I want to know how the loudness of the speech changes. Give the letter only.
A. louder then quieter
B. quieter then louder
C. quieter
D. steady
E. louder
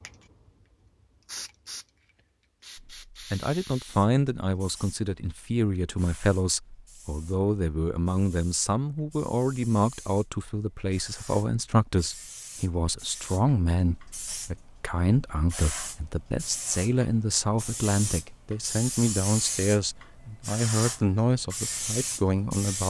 D.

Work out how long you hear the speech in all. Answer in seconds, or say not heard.
20 s.